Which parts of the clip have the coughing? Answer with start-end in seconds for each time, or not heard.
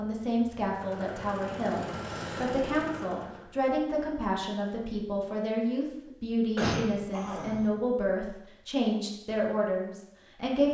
2.0-2.5, 6.5-7.7.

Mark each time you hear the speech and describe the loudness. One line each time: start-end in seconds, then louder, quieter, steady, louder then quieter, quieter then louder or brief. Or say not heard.
0.0-10.7 steady.